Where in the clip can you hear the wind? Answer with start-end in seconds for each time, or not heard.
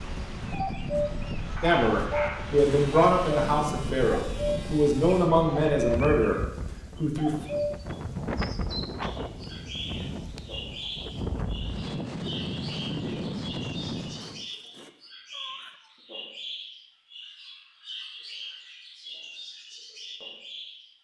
0.0-14.4.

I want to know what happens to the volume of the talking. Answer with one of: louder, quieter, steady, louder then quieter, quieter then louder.
steady.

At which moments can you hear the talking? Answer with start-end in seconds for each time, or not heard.
1.6-7.3.